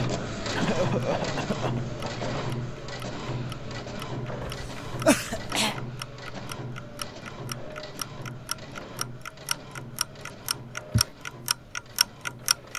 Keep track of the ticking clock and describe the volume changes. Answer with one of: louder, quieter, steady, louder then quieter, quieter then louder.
louder.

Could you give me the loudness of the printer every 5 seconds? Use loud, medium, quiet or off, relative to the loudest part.
loud, medium, quiet.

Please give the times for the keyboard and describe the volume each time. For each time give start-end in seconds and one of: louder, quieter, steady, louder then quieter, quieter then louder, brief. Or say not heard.
not heard.